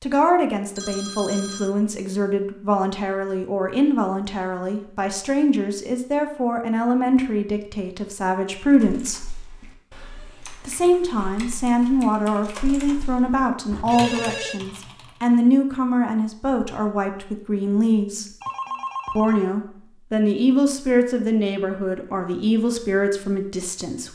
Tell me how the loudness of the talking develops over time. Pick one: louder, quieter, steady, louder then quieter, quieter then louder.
steady.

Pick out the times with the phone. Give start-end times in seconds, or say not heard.
0.8-1.8, 13.7-14.6, 18.4-19.5.